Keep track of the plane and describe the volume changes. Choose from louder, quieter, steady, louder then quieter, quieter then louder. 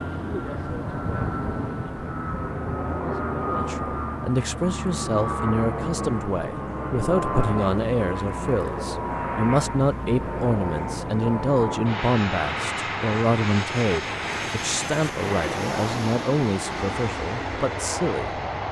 steady.